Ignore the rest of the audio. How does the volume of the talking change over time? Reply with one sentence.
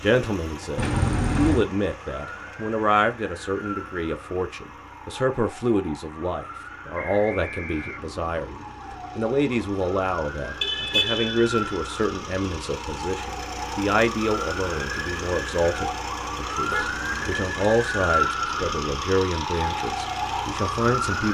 The volume of the talking stays about the same.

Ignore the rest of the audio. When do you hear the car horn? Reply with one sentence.
The car horn can be heard from 0.8 to 1.7 s, from 10.6 to 11.8 s and from 16.6 to 17.4 s.